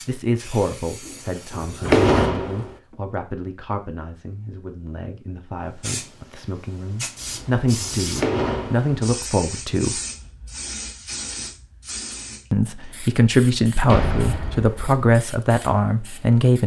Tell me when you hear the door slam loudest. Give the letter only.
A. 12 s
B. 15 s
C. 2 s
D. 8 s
C.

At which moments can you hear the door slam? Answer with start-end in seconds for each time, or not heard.
1.1-2.7, 7.3-8.9, 13.8-14.9.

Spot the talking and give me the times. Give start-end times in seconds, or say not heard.
0.1-10.0, 12.5-16.6.